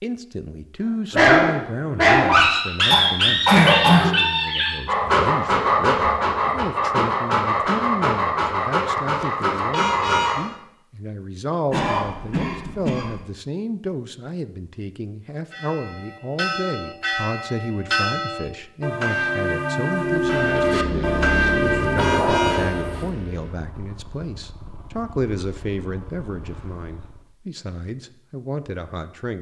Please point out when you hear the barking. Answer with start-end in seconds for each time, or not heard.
1.1-10.4.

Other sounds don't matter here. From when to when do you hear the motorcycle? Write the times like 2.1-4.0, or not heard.
20.0-27.4.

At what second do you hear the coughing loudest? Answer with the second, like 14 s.
4 s.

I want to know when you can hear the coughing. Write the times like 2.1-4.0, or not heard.
2.9-4.2, 11.7-13.2, 21.9-23.1.